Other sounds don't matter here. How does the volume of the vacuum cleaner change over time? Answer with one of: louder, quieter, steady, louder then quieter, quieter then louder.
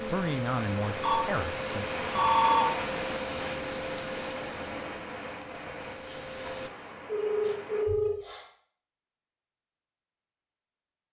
quieter.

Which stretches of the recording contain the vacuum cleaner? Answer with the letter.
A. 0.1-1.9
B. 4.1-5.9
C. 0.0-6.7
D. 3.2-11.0
C.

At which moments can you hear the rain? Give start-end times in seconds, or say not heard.
0.0-7.8.